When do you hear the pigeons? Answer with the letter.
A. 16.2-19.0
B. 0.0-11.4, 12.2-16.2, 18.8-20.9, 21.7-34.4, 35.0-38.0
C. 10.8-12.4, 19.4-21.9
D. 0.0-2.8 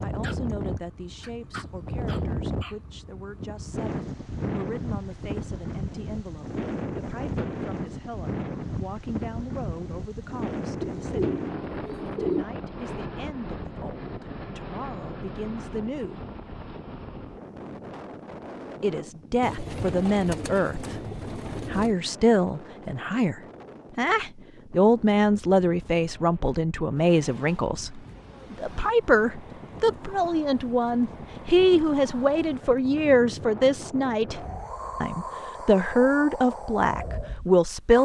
C.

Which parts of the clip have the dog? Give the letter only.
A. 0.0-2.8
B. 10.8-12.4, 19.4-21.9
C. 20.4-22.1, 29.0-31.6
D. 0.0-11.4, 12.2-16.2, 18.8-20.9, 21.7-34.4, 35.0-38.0
A.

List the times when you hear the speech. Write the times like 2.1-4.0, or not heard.
0.0-11.4, 12.2-16.2, 18.8-20.9, 21.7-34.4, 35.0-38.0.